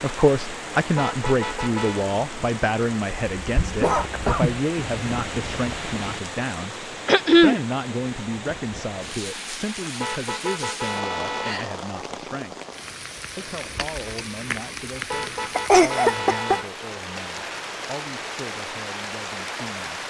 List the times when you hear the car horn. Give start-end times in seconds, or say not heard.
0.9-2.1, 10.0-11.6, 15.1-16.6.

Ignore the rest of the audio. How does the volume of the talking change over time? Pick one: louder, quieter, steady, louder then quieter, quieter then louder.
quieter.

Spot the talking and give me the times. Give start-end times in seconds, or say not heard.
0.0-12.6, 13.3-20.0.